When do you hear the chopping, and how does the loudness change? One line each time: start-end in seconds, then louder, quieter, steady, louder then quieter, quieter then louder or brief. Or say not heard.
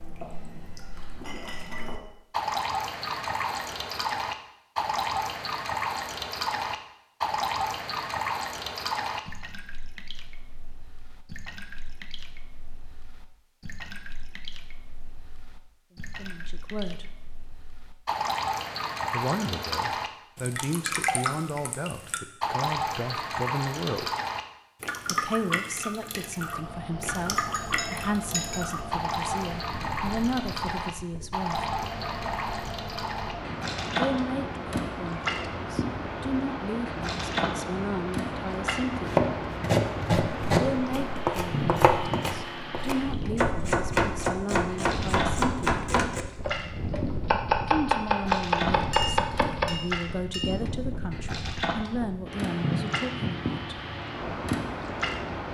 38.9-49.8 steady.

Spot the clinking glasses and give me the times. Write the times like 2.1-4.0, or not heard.
0.2-2.0, 27.4-28.7, 48.9-50.6.